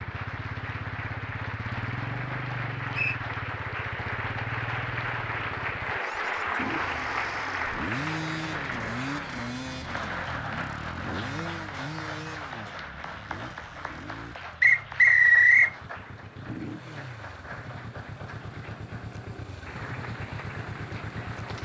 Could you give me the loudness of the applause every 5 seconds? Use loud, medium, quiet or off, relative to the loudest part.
loud, loud, medium, quiet, medium.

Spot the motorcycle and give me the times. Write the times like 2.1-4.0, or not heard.
0.0-21.6.